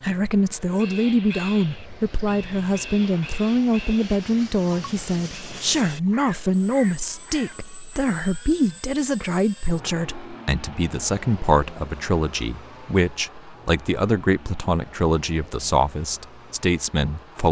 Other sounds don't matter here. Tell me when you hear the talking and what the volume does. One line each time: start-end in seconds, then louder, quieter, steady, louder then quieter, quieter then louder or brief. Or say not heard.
0.0-17.4 steady.